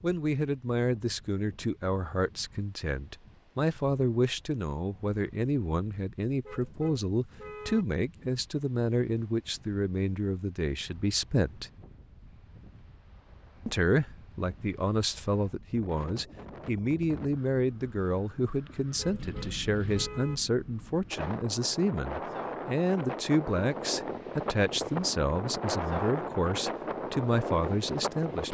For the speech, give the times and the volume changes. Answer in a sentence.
You can hear the speech from 0.0 to 11.7 s, at a steady volume; and from 13.7 to 28.4 s, at a steady volume.